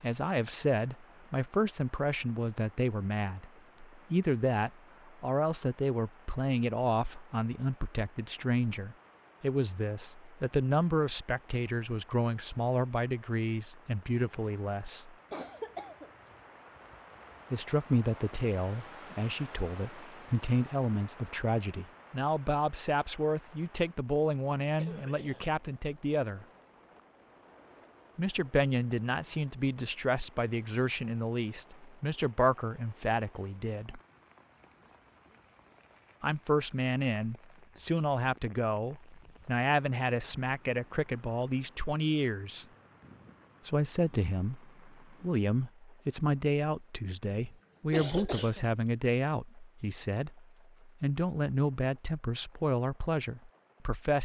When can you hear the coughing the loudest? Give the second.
48 s.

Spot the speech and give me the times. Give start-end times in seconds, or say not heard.
0.0-15.2, 17.5-26.4, 28.1-34.0, 36.2-42.6, 43.6-54.2.